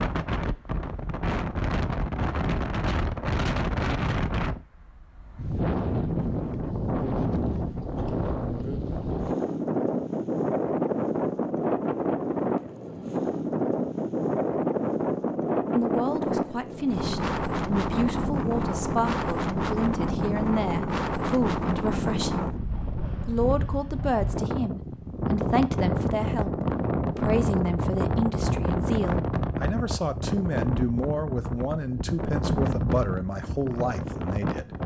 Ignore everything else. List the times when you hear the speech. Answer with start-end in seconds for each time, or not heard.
15.7-22.5, 23.2-34.7.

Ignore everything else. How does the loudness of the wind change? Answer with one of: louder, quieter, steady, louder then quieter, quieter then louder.
steady.